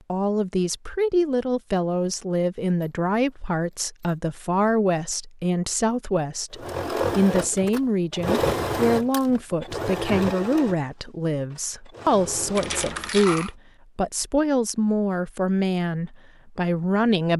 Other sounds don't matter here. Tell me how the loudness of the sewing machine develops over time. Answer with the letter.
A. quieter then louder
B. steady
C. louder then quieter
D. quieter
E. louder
D.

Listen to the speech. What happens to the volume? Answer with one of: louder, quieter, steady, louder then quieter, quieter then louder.
steady.